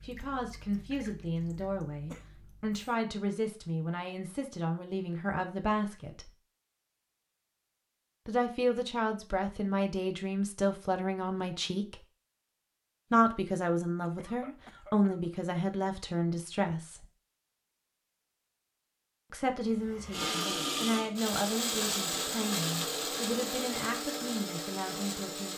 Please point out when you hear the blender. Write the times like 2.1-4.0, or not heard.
20.1-25.5.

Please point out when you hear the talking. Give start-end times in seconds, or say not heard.
0.0-6.3, 8.2-12.0, 13.1-17.1, 19.3-25.5.